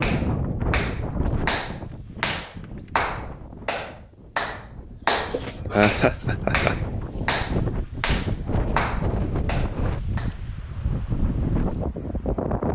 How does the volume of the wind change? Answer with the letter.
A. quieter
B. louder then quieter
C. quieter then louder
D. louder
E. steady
C.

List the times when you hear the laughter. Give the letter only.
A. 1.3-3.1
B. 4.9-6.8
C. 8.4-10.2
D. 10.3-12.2
B.